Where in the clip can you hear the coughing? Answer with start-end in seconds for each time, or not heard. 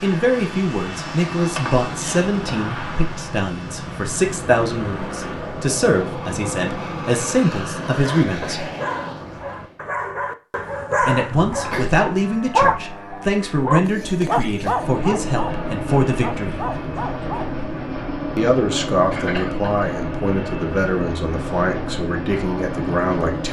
1.6-2.5, 11.6-12.0, 19.1-19.7.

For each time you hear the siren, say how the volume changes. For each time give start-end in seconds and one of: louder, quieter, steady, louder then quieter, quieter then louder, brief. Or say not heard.
not heard.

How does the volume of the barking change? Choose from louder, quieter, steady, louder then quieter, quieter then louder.
louder then quieter.